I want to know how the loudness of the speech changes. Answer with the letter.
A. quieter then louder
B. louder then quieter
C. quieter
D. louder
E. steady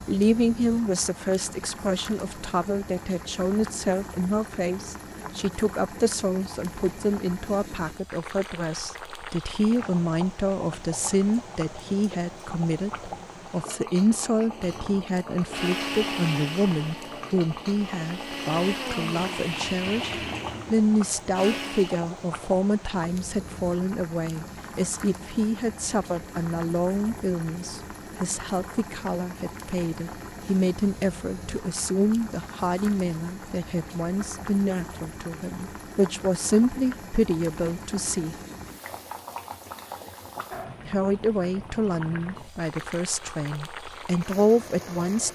E.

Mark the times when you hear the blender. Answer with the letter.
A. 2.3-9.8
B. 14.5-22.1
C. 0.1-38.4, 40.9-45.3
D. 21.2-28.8
B.